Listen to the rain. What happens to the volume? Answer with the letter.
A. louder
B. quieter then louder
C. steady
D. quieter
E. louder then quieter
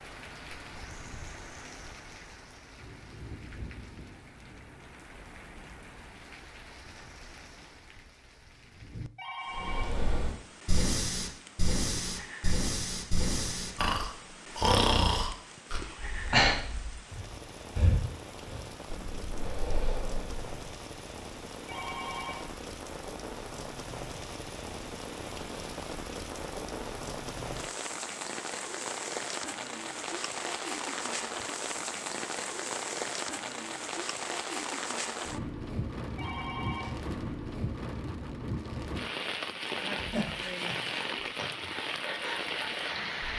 A.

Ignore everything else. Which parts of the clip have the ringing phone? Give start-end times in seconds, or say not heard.
9.2-10.1, 21.6-22.6, 36.1-37.0.